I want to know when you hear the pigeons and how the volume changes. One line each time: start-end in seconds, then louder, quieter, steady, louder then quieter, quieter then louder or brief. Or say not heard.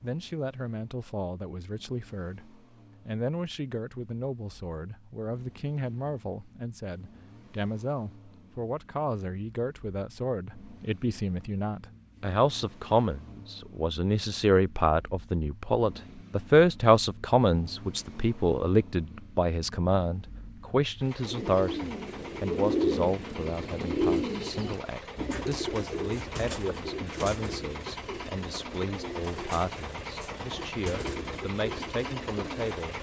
21.2-32.8 quieter.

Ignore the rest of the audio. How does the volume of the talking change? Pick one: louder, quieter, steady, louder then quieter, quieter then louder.
louder then quieter.